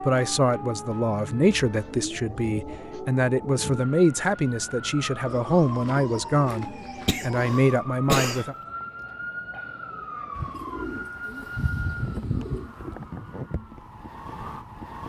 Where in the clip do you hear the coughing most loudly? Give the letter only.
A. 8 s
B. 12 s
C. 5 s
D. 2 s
A.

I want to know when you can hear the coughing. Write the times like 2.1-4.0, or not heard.
7.0-8.4.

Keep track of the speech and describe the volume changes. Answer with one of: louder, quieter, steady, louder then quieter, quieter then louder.
steady.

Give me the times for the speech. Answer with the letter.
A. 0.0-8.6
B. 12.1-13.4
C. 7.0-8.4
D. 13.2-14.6
A.